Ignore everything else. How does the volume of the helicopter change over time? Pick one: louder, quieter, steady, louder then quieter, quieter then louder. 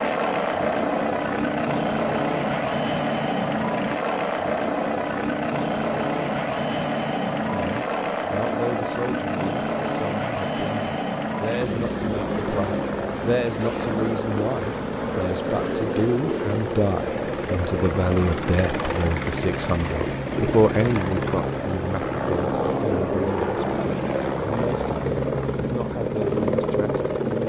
steady.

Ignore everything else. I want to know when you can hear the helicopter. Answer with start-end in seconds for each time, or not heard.
0.0-27.4.